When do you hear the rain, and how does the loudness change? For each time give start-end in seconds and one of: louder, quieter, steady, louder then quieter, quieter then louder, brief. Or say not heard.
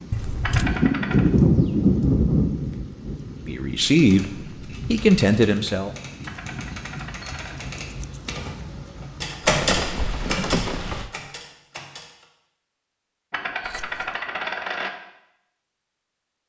0.0-11.1 quieter then louder.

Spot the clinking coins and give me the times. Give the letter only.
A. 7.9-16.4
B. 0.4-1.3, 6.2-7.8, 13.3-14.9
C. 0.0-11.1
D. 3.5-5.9
B.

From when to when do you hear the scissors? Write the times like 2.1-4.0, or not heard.
0.1-0.8, 7.8-8.3, 13.6-14.2.